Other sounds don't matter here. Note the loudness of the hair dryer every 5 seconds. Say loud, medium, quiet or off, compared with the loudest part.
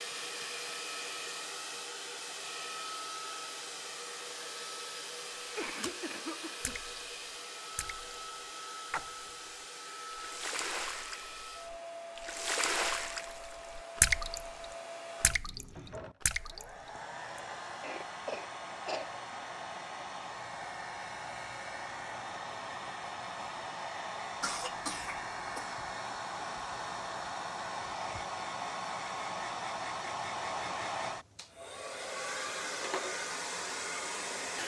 loud, medium, medium, medium, loud, loud, loud.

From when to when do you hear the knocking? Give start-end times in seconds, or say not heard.
not heard.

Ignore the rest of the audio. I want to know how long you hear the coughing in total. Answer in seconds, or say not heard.
4 s.